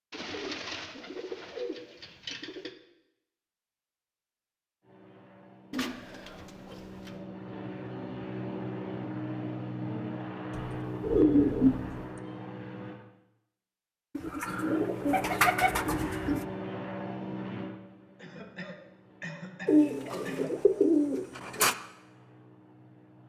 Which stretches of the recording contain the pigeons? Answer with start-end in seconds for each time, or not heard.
0.1-2.7, 5.7-7.2, 10.5-12.0, 14.2-16.4, 19.6-21.8.